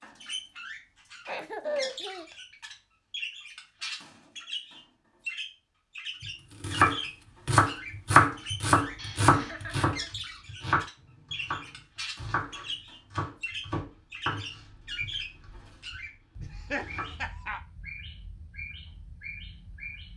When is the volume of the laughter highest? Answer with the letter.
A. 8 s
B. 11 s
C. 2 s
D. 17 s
C.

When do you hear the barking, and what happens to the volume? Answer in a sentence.
The barking can't be heard in this clip.